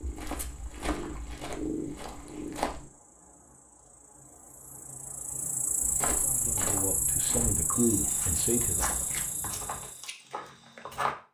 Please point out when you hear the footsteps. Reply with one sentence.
The footsteps can be heard from 0.0 to 2.8 s and from 5.8 to 11.2 s.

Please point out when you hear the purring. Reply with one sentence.
You can hear the purring from 0.0 to 2.9 s.